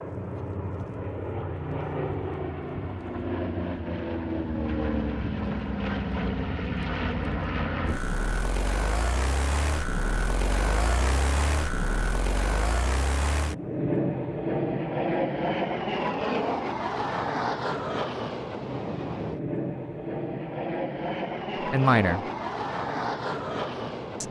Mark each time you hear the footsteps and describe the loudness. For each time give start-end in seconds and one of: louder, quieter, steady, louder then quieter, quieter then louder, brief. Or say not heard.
not heard.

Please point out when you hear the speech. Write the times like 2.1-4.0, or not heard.
21.6-22.3.